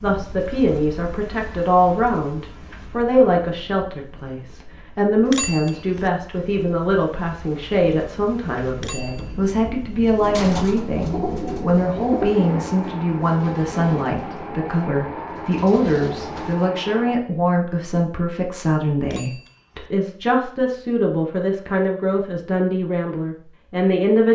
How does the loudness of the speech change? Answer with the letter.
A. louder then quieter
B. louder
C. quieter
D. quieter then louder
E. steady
E.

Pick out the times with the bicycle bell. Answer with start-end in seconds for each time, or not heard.
5.2-6.1, 8.8-9.5, 19.0-19.9.